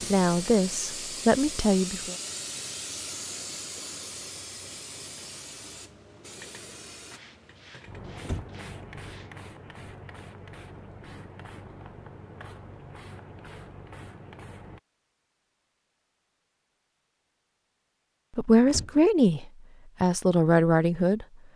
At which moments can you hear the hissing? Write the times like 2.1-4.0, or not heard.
0.0-14.8.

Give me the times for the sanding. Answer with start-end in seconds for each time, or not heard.
7.1-9.4.